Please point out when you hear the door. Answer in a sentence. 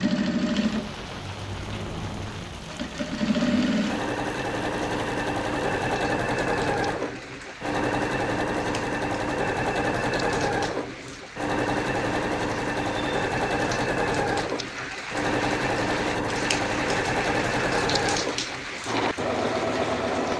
The door can't be heard in this clip.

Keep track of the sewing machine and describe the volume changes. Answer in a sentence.
The loudness of the sewing machine stays about the same.